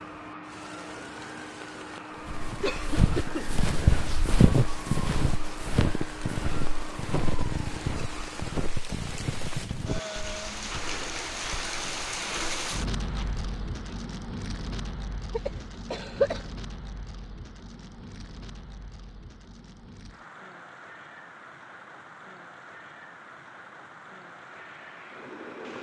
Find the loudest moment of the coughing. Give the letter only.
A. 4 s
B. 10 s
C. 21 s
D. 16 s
D.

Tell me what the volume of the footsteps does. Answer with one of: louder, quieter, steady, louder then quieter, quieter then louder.
quieter.